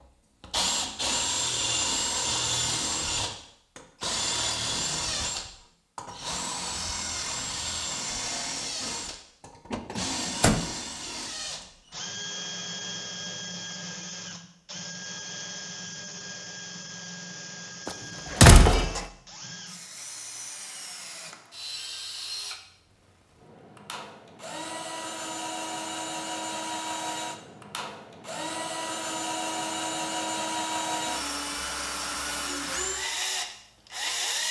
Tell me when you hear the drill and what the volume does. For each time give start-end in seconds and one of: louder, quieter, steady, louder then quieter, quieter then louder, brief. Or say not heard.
0.4-34.4 quieter then louder.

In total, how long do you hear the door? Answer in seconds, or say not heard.
2 s.